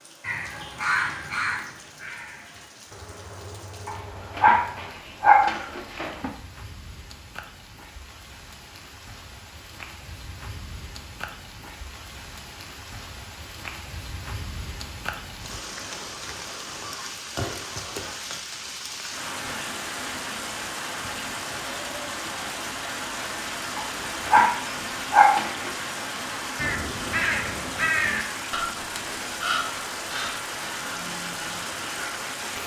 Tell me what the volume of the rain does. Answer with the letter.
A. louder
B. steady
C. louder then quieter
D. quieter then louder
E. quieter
A.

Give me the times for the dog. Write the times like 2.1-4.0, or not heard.
3.9-6.3, 23.8-25.7.